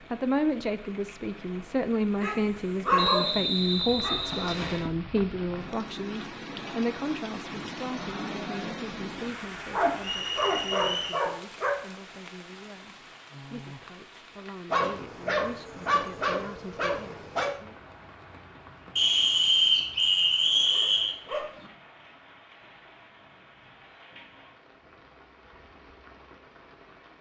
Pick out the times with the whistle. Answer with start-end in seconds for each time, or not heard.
3.0-4.9, 10.0-11.2, 18.9-21.1.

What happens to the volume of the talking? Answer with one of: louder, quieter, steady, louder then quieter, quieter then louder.
quieter.